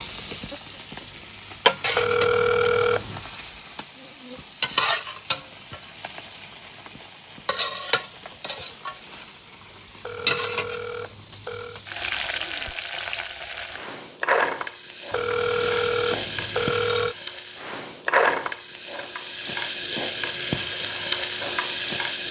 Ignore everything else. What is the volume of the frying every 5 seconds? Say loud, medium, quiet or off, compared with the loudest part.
loud, medium, loud, loud, loud.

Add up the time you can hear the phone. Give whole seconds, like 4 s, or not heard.
5 s.